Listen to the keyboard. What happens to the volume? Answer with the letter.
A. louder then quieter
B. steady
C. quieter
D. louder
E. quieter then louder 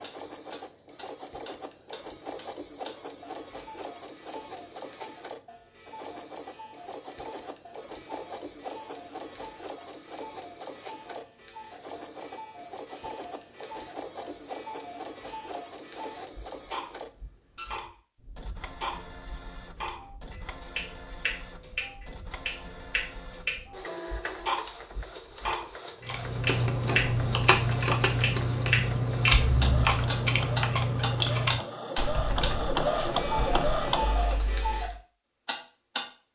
C.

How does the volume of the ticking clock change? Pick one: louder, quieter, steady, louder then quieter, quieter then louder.
louder.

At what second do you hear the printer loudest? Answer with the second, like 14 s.
33 s.